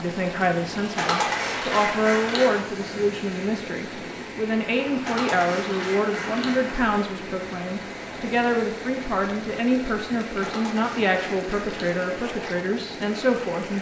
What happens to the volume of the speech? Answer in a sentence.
The loudness of the speech stays about the same.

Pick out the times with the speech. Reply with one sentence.
You can hear the speech from 0.0 to 13.7 s.